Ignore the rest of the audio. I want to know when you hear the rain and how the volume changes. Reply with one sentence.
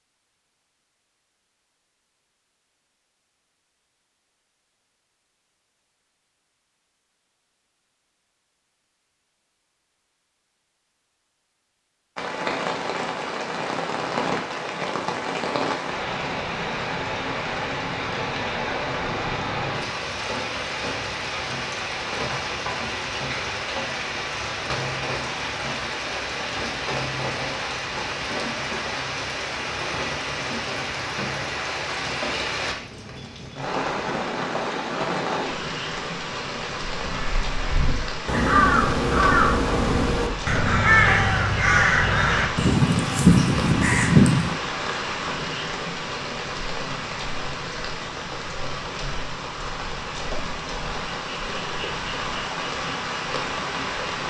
The rain can be heard from 12.2 to 54.2 s, at a steady volume.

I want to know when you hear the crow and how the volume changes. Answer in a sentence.
You can hear the crow from 37.1 to 44.5 s, at a steady volume.